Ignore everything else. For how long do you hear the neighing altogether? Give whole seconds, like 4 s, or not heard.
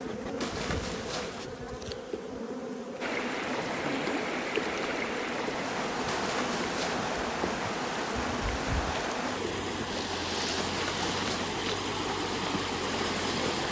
3 s.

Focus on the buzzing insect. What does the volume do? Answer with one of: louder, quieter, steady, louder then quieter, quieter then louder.
steady.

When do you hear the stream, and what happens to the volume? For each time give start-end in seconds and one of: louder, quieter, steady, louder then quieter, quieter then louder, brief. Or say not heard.
3.0-13.6 steady.